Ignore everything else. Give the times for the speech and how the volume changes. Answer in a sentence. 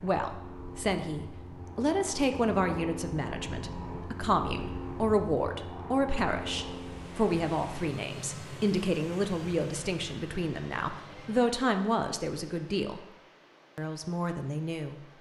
The speech can be heard from 0.0 to 13.1 s, at a steady volume; and briefly from 13.8 to 15.0 s.